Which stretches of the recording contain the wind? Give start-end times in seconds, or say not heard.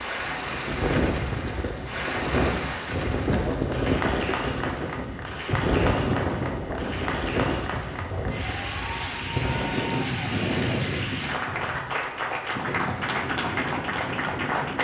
0.1-14.7.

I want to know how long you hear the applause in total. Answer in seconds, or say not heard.
15 s.